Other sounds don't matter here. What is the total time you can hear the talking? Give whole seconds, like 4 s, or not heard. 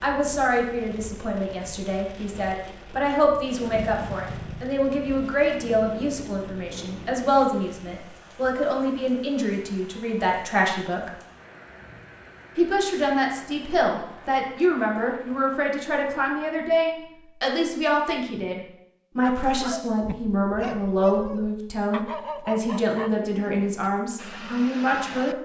24 s.